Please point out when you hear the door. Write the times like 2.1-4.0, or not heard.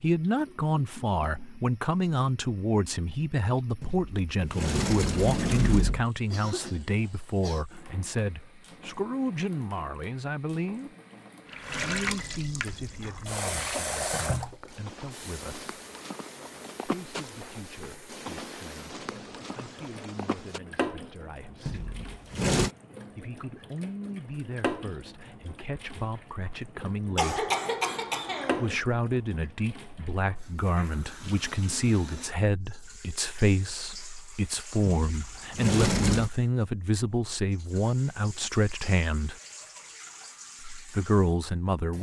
3.8-6.0, 21.6-22.7, 34.9-36.3.